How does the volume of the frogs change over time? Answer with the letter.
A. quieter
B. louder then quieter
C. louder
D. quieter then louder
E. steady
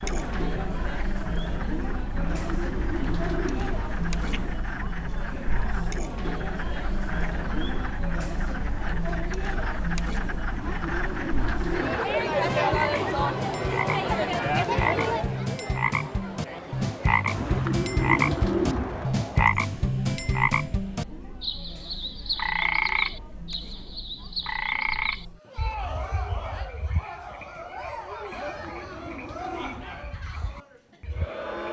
B.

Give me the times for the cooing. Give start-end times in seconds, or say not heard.
2.1-4.5, 10.5-12.1, 17.3-19.1, 28.3-30.1.